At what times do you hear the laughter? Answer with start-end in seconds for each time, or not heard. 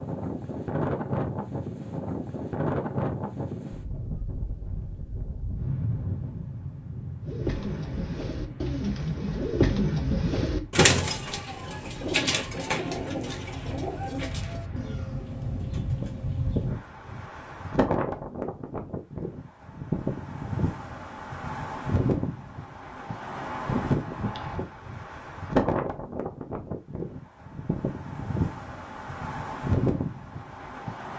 not heard.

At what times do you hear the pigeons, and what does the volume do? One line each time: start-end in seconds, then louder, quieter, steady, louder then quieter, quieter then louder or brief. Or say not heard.
7.2-16.7 louder then quieter.